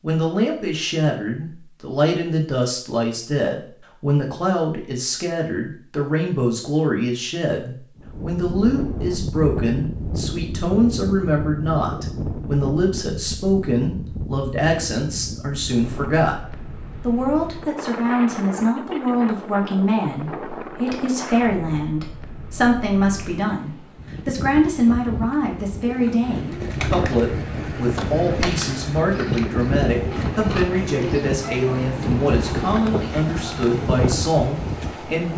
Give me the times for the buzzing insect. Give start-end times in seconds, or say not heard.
not heard.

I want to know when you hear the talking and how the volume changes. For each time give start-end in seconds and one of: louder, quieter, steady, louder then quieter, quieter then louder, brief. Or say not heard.
0.0-16.4 steady
17.1-35.3 steady.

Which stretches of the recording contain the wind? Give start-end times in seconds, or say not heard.
8.0-35.3.